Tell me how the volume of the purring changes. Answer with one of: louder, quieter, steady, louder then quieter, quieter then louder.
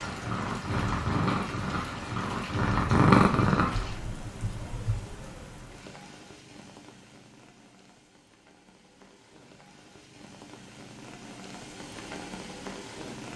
louder then quieter.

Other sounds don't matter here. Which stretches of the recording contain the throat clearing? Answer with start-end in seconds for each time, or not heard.
not heard.